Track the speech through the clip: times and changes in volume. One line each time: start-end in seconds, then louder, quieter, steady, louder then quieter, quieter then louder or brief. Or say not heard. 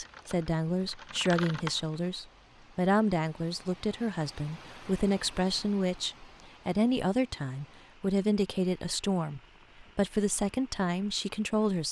0.0-11.8 steady.